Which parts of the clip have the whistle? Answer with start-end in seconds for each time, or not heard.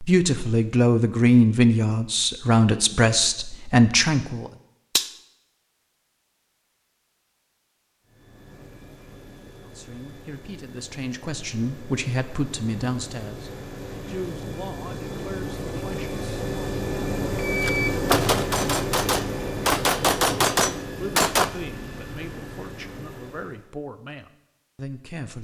not heard.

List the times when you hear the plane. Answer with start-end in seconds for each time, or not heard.
8.0-23.7.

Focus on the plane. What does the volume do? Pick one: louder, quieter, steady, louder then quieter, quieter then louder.
louder then quieter.